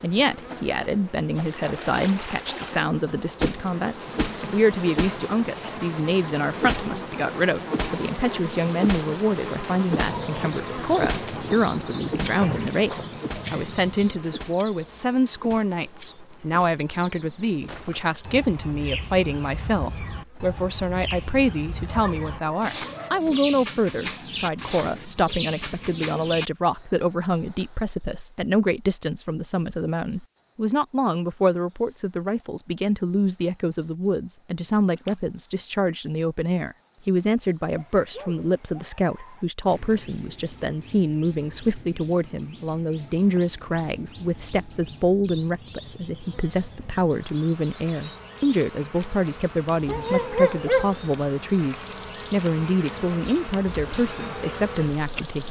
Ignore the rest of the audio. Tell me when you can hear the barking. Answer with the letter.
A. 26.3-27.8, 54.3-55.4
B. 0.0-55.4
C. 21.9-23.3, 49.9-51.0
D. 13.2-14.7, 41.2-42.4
C.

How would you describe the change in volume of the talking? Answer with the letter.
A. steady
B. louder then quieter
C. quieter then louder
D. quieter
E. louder
A.